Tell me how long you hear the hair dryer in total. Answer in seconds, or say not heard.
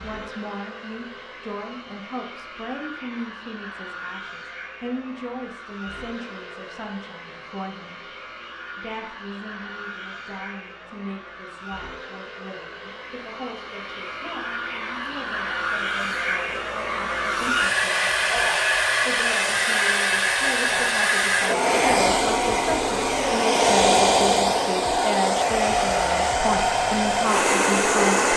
28 s.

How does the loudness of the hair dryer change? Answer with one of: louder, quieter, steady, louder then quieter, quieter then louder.
louder.